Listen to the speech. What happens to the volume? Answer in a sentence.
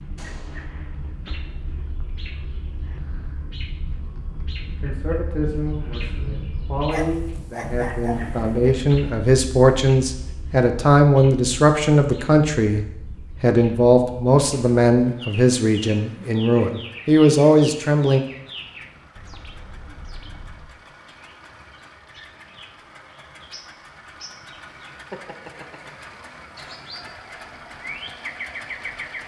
The volume of the speech goes up.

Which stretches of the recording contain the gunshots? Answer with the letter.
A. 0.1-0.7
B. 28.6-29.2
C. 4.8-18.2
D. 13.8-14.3
A.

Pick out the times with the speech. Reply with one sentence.
The speech can be heard from 4.8 to 18.2 s.